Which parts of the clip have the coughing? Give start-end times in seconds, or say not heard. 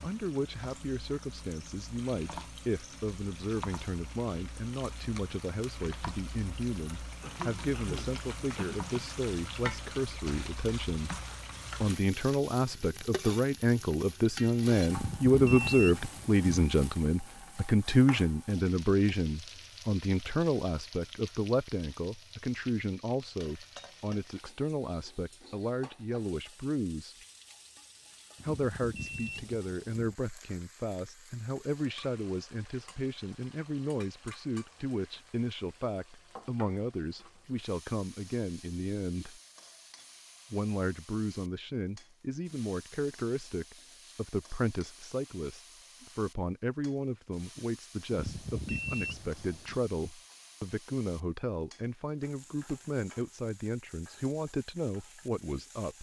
7.2-8.8.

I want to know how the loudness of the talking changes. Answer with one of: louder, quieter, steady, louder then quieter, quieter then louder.
louder then quieter.